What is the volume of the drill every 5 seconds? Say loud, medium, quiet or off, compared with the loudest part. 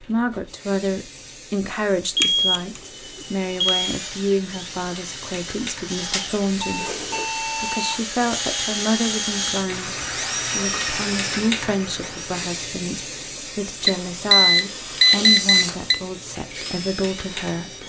medium, loud, loud, loud.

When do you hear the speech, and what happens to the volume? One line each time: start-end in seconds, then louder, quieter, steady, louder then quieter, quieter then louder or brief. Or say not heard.
0.0-17.8 steady.